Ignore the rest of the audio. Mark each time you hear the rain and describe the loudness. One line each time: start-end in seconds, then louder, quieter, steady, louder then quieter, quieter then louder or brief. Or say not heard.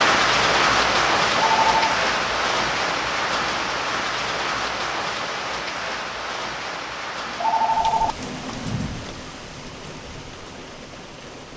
0.0-11.5 quieter.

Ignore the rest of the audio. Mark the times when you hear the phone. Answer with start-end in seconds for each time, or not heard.
1.2-1.9, 7.2-8.9.